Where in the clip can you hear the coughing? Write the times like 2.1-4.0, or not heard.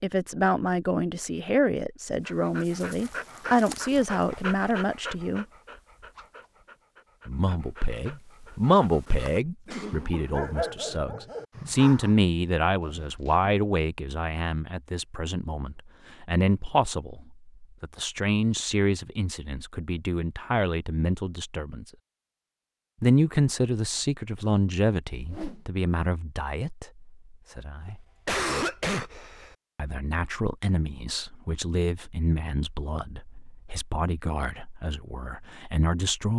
9.7-11.0, 27.8-29.6.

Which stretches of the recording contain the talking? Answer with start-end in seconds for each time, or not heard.
0.0-5.5, 7.2-21.9, 23.0-28.0, 29.8-36.3.